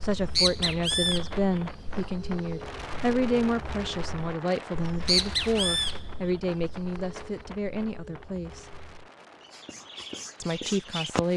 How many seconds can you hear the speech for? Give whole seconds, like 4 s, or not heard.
10 s.